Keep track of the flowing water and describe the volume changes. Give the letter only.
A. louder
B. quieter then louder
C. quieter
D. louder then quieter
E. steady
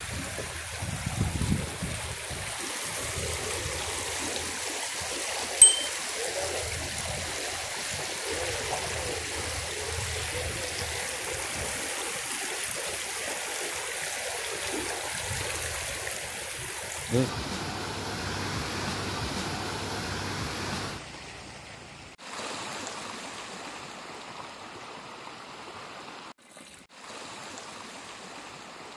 C.